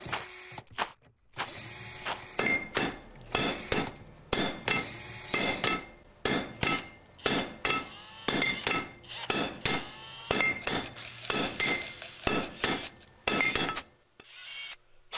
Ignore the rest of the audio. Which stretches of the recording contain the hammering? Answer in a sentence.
You can hear the hammering from 2.4 to 14.2 s.